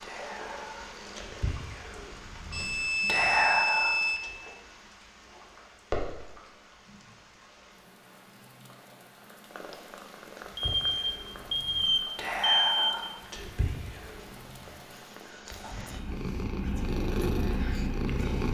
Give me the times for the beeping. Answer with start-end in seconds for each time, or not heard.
2.5-4.2, 10.6-12.9.